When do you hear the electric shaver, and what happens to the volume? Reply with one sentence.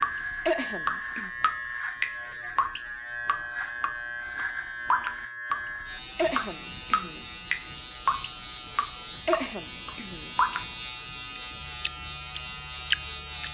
You can hear the electric shaver from 0.0 to 13.4 s, at a steady volume.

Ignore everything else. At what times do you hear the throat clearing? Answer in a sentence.
The throat clearing can be heard from 0.5 to 1.3 s, from 6.2 to 7.2 s and from 9.2 to 10.3 s.